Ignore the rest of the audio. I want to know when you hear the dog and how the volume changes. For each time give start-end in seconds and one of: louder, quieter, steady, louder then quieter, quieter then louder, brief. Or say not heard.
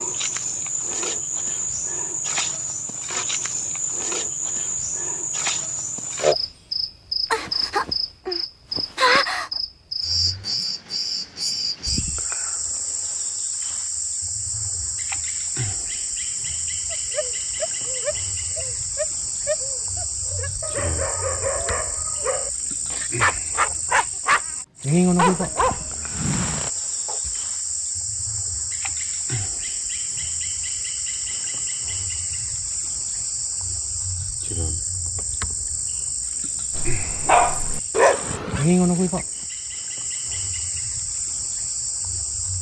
16.9-24.4 louder
25.1-27.3 brief
36.8-39.2 brief.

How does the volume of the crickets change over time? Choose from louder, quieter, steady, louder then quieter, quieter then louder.
steady.